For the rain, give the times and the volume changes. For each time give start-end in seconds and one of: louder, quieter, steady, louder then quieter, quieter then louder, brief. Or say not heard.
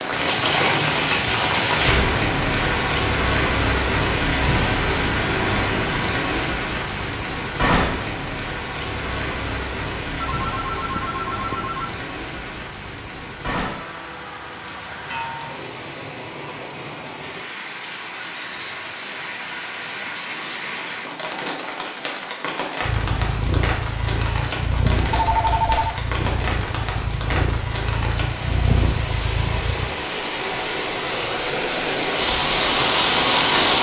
0.0-33.7 quieter then louder.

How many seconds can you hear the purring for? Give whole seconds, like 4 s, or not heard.
7 s.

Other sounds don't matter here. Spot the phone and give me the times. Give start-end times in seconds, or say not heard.
10.2-12.0, 25.1-26.0.